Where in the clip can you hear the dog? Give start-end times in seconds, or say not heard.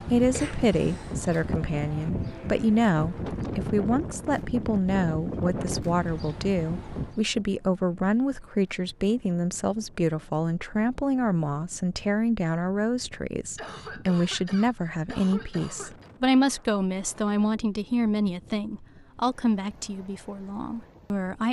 not heard.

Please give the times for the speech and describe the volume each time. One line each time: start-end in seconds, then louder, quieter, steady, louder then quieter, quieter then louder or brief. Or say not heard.
0.1-21.4 steady.